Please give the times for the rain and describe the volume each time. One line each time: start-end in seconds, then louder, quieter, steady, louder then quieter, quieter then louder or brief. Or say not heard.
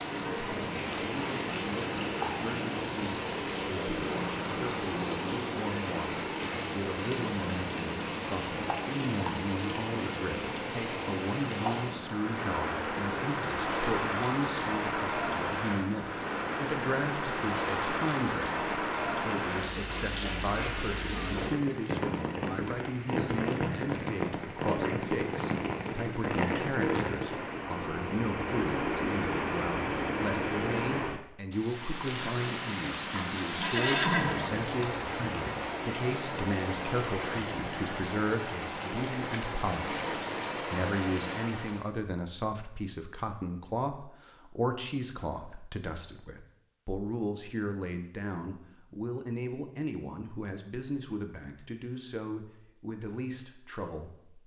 0.0-41.9 steady.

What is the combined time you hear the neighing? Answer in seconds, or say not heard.
2 s.